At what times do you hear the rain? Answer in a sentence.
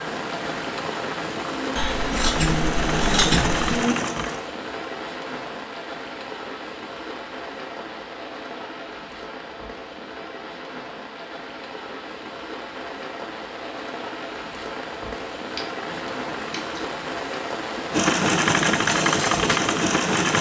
You can hear the rain from 0.0 to 20.3 s.